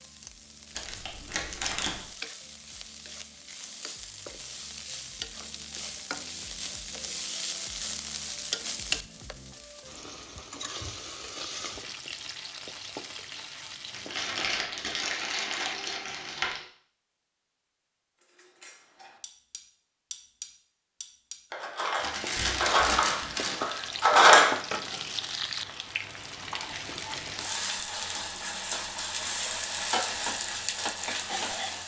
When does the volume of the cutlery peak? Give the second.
24 s.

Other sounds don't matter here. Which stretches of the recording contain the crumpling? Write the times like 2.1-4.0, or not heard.
0.8-2.0, 13.9-16.6, 22.0-23.6.